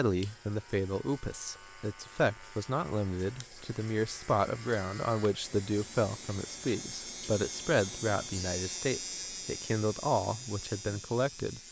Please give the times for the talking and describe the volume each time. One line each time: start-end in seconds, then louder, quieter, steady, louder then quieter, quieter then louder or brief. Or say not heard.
0.0-11.6 steady.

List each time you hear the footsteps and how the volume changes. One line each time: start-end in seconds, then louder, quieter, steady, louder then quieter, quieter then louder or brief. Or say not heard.
not heard.